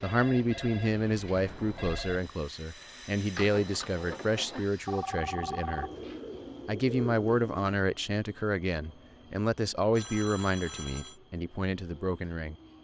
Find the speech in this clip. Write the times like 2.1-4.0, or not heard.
0.0-5.9, 6.7-12.6.